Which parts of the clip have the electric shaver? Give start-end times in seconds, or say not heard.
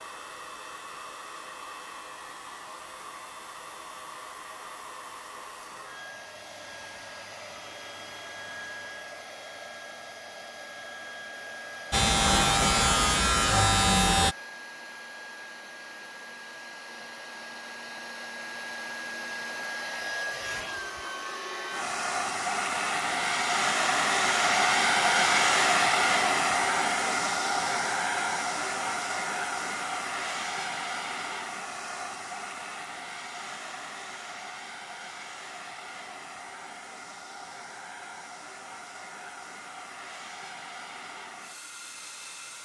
11.9-14.3.